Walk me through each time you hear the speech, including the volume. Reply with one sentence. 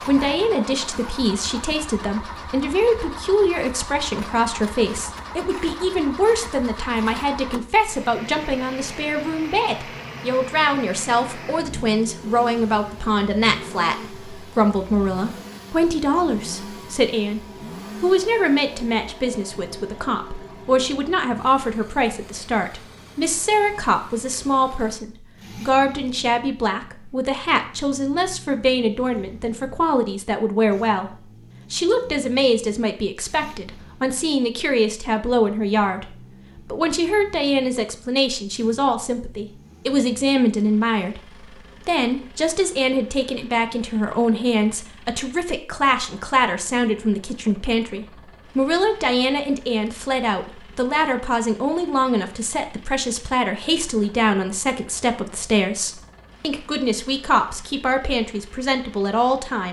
The speech can be heard from 0.1 to 41.2 s, at a steady volume; and from 41.9 to 59.6 s, at a steady volume.